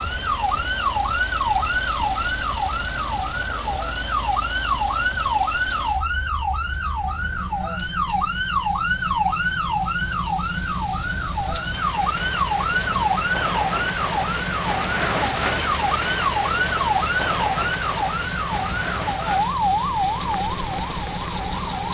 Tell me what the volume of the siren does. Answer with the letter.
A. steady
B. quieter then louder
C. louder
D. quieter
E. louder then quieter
A.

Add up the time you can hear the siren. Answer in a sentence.
The siren can be heard for 22 seconds in total.